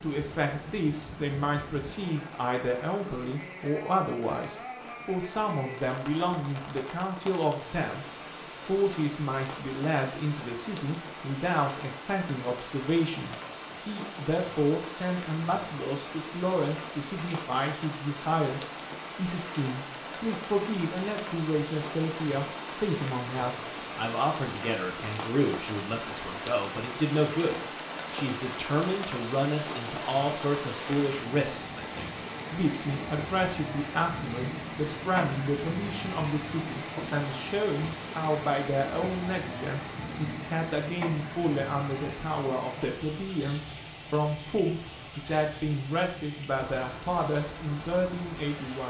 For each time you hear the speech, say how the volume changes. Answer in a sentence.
The speech can be heard from 0.0 to 48.8 s, at a steady volume.